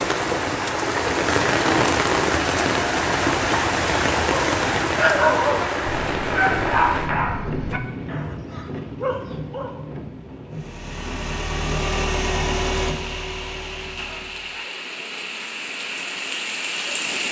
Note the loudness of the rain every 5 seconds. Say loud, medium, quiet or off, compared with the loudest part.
loud, medium, quiet, medium.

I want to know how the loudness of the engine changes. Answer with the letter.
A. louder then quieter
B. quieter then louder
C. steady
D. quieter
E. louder
A.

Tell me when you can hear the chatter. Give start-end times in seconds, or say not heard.
not heard.